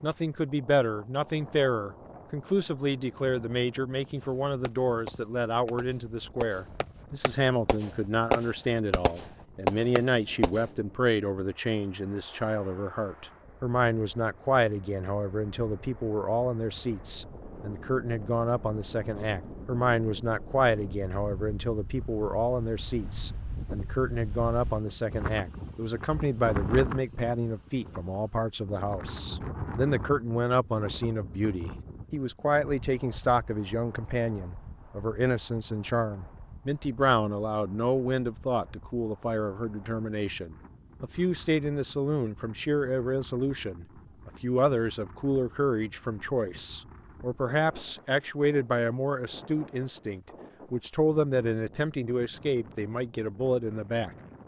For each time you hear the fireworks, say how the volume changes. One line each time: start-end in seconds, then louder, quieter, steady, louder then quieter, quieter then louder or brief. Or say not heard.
4.2-10.7 louder.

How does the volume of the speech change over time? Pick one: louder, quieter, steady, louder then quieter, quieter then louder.
steady.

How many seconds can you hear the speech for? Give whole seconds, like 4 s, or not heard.
54 s.